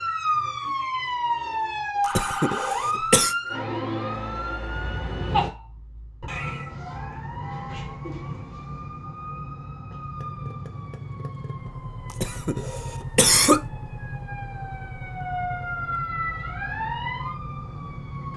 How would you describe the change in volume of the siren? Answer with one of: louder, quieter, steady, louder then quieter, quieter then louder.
quieter then louder.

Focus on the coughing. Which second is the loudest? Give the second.
13 s.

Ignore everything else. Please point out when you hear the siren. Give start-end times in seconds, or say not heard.
0.0-18.3.